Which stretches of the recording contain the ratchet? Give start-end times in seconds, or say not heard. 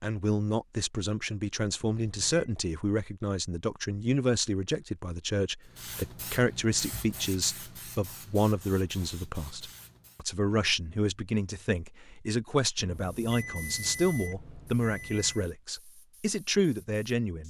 not heard.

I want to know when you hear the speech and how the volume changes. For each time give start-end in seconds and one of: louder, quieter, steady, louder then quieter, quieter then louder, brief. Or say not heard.
0.0-17.4 steady.